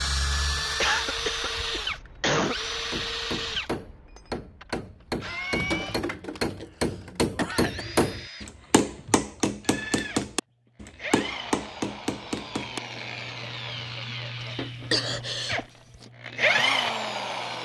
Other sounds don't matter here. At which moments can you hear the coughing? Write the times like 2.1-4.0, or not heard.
0.8-2.5, 6.5-7.8, 14.4-16.1.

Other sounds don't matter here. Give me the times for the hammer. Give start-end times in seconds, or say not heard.
2.9-12.8.